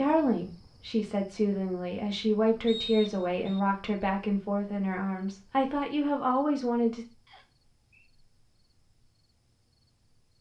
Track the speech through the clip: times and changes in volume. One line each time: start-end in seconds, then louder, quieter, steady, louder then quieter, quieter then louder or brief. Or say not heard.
0.0-7.0 steady.